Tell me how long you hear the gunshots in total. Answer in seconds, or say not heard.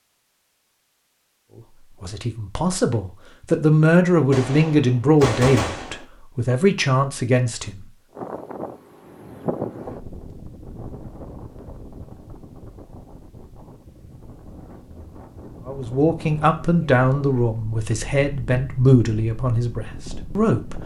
2 s.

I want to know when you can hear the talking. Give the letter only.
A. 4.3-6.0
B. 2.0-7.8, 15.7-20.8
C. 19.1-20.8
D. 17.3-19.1
B.